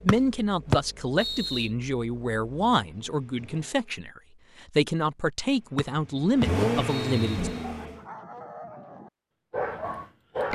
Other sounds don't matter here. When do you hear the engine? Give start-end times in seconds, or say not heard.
0.0-4.0, 5.5-8.0.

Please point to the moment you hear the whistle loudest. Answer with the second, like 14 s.
1 s.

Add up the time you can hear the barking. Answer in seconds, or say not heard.
3 s.